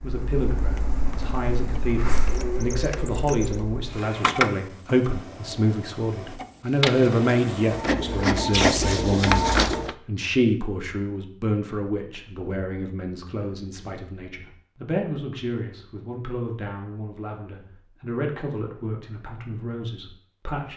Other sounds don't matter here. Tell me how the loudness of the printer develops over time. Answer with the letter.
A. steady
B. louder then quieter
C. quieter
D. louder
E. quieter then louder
D.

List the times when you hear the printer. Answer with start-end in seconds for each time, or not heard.
0.0-9.9.